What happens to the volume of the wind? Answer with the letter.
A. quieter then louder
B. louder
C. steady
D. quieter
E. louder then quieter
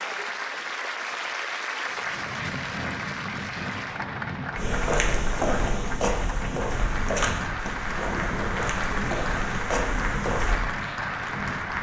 C.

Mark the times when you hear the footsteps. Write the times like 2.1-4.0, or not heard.
4.5-10.6.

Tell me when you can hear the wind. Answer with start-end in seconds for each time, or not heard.
1.9-11.7.